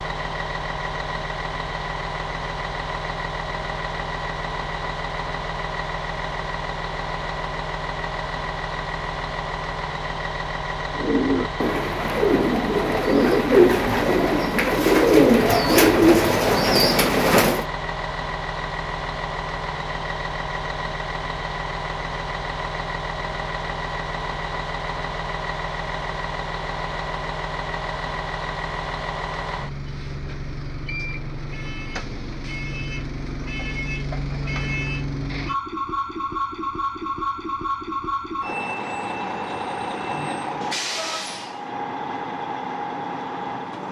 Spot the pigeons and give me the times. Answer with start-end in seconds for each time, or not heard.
10.9-17.6.